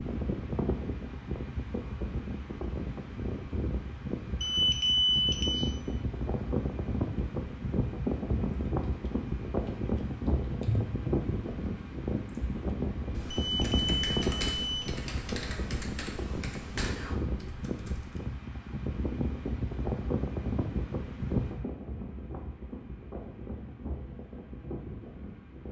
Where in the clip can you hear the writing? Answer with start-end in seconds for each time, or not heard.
not heard.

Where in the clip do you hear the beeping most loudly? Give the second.
5 s.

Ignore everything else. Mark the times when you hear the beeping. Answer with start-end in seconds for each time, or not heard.
4.4-5.7, 13.3-14.9.